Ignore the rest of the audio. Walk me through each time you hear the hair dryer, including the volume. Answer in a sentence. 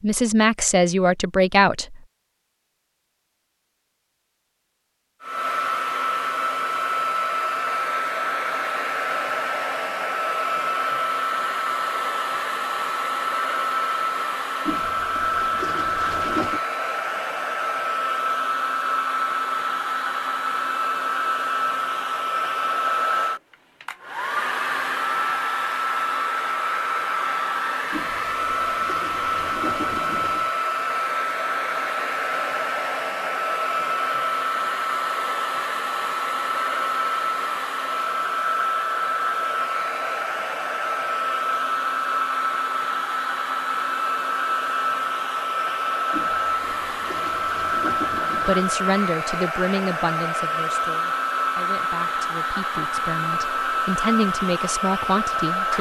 The hair dryer can be heard from 5.2 to 55.7 s, at a steady volume.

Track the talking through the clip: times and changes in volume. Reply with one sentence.
The talking can be heard briefly from 0.0 to 2.0 s; and from 48.4 to 55.7 s, getting quieter then louder.